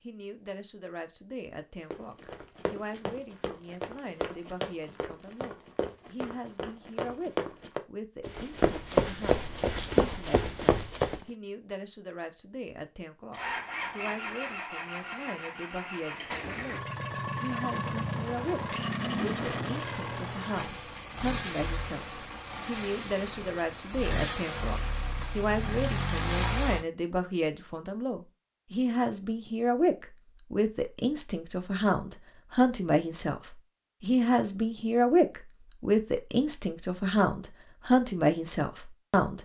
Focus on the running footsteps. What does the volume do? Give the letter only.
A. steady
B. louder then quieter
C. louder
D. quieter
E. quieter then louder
C.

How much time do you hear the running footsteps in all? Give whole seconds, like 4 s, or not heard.
9 s.